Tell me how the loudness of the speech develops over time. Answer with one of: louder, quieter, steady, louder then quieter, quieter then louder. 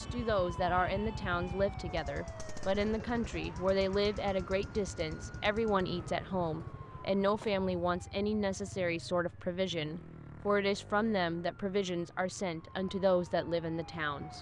steady.